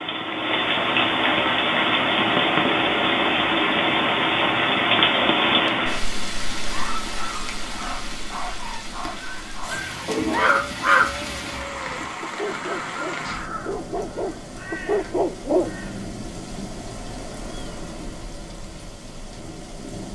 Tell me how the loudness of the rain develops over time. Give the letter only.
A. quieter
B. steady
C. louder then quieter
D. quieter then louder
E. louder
A.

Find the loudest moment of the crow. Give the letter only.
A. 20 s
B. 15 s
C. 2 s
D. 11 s
D.